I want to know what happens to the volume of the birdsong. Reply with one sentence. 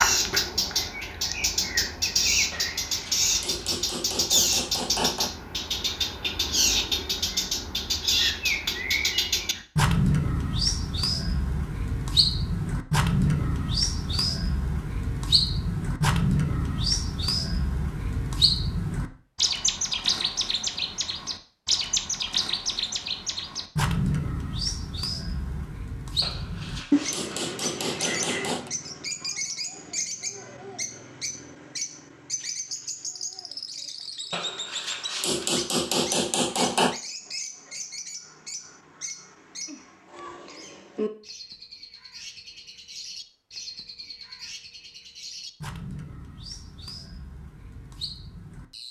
The loudness of the birdsong goes down.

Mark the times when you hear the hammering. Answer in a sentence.
You can hear the hammering from 2.5 to 5.3 s, from 26.2 to 28.7 s and from 34.3 to 37.0 s.